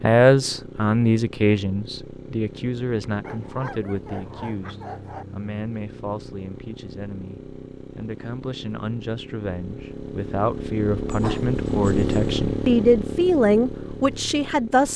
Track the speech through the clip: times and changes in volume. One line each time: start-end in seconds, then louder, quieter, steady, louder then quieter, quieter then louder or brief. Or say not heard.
0.0-14.9 quieter then louder.